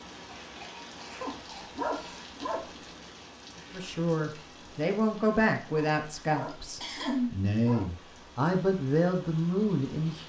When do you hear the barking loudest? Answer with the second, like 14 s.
2 s.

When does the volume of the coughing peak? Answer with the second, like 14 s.
7 s.